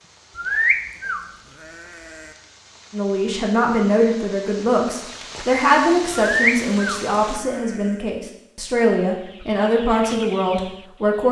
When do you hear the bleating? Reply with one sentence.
You can hear the bleating from 0.3 to 2.3 s and from 6.2 to 8.0 s.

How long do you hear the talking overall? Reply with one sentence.
You can hear the talking for 8 seconds altogether.